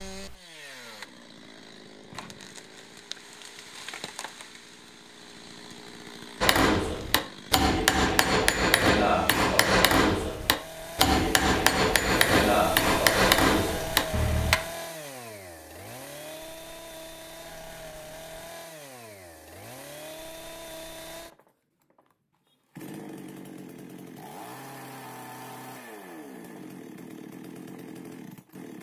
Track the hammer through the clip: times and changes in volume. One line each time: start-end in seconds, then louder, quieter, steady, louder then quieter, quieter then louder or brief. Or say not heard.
6.4-14.6 steady.